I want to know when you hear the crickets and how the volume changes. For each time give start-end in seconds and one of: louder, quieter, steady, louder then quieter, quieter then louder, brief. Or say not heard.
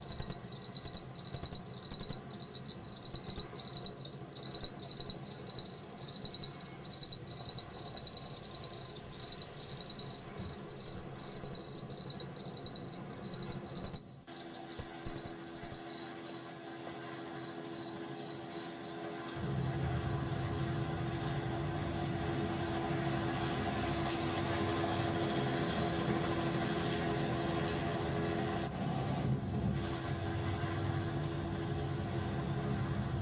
0.0-33.1 quieter.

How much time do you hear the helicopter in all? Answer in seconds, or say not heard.
33 s.